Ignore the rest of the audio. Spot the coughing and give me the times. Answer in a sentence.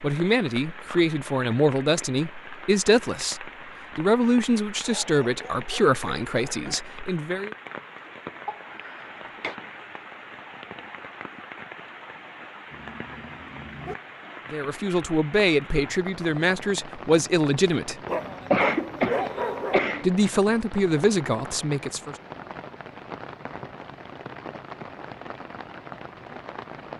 You can hear the coughing from 8.4 to 9.6 s and from 18.5 to 20.1 s.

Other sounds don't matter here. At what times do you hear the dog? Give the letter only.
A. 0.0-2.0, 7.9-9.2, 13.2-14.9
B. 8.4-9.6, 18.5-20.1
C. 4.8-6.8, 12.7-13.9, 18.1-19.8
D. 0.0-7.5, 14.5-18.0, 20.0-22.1
C.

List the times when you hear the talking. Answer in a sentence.
The talking can be heard from 0.0 to 7.5 s, from 14.5 to 18.0 s and from 20.0 to 22.1 s.